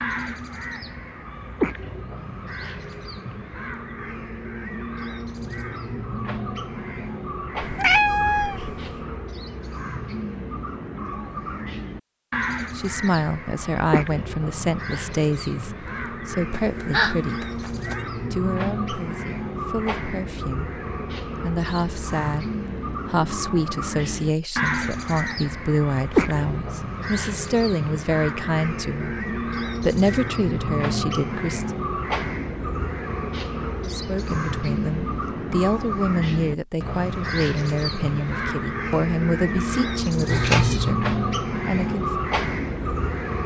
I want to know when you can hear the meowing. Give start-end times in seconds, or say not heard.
7.6-9.1, 16.5-18.0, 40.3-41.0.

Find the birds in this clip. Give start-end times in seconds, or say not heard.
0.0-43.4.